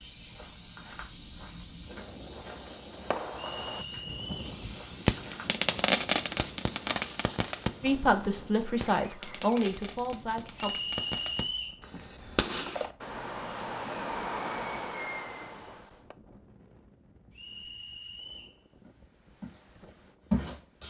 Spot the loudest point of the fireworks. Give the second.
6 s.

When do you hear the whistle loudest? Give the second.
11 s.